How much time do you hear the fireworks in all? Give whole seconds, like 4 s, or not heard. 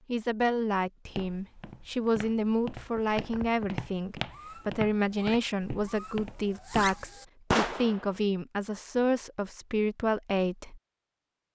5 s.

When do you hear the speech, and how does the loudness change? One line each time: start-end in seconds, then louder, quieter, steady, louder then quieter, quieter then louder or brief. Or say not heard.
0.1-10.8 steady.